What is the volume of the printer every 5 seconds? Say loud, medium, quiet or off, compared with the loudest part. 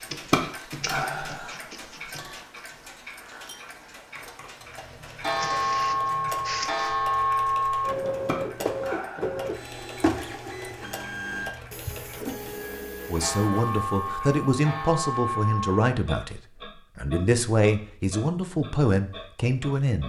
medium, loud, loud, off.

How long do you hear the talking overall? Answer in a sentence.
You can hear the talking for 7 seconds altogether.